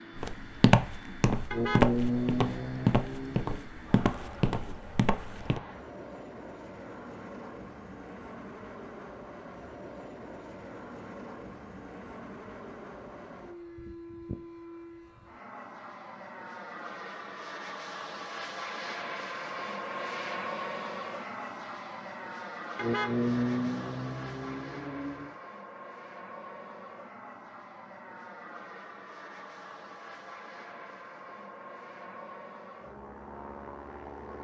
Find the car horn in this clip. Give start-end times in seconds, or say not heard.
1.5-3.6, 22.8-25.3.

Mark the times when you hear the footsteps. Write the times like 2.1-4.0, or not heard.
0.1-5.6.